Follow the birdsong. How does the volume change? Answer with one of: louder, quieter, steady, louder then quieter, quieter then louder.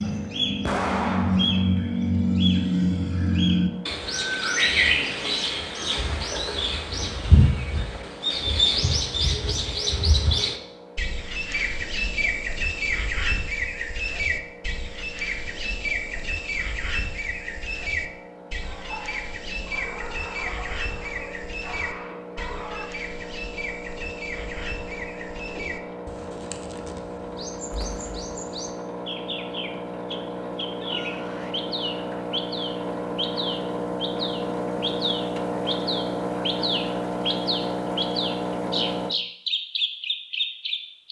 quieter then louder.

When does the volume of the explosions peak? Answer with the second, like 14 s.
1 s.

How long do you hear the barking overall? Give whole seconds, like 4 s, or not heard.
4 s.